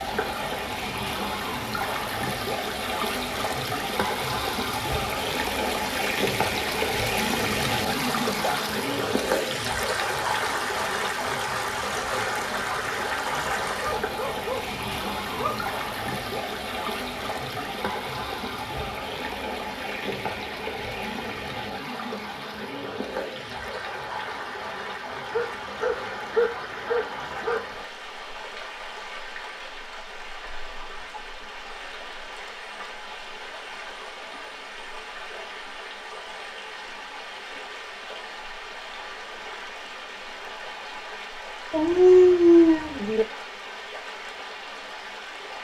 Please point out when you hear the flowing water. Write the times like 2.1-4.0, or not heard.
0.0-45.5.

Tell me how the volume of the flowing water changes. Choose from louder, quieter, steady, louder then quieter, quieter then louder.
quieter.